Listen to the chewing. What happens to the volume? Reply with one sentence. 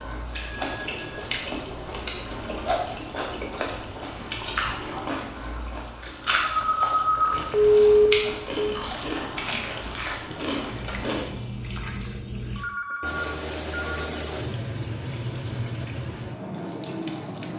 The volume of the chewing stays about the same.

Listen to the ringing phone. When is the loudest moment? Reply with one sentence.
The loudest moment of the ringing phone is at 8 seconds.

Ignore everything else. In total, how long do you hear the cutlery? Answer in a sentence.
You can't hear the cutlery here.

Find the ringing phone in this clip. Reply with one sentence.
You can hear the ringing phone from 0.5 to 1.3 s, from 6.4 to 8.8 s and from 12.6 to 14.1 s.